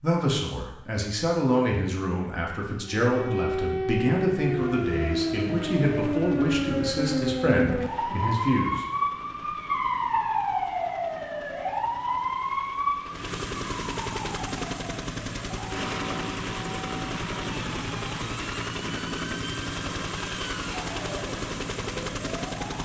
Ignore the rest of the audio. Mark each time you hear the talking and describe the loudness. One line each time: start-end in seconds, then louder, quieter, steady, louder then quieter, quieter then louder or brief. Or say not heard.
0.0-8.8 steady.